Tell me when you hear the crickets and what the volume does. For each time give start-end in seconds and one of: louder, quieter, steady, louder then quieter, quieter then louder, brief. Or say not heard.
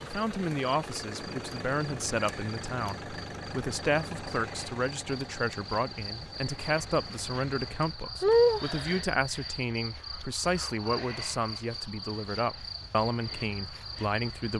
0.0-14.5 louder then quieter.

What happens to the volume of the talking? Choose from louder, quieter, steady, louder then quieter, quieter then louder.
steady.